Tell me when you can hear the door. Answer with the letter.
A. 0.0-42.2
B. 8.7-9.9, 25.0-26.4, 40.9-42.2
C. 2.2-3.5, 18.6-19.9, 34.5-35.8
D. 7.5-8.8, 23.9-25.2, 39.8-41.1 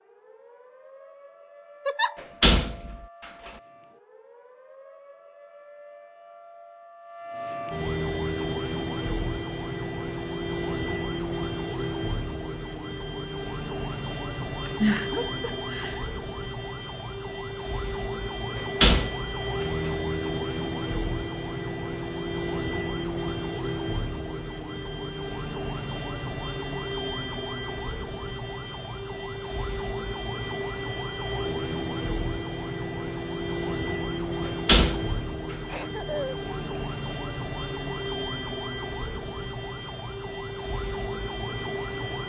C.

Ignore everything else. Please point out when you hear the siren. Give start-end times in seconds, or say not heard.
0.0-42.2.